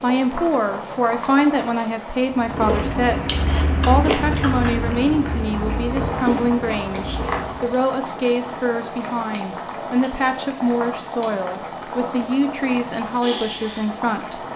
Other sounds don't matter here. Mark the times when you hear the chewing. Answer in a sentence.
The chewing can be heard from 2.3 to 7.8 s.